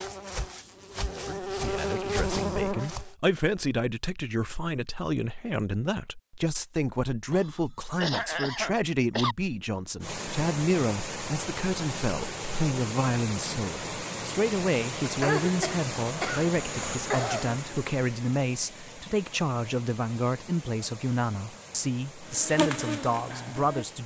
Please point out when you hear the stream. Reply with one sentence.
You can hear the stream from 10.0 to 24.0 s.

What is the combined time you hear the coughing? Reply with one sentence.
You can hear the coughing for 5 seconds altogether.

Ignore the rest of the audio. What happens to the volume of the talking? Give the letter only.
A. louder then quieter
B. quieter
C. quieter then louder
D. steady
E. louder
D.